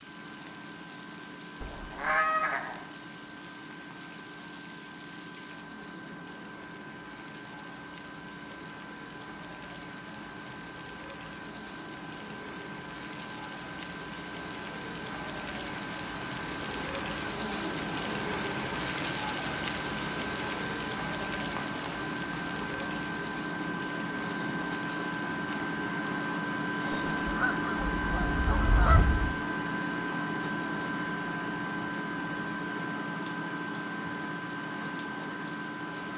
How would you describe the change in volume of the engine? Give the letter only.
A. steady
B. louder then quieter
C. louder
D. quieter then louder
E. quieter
C.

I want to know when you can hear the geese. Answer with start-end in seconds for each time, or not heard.
1.6-2.8, 26.9-29.4.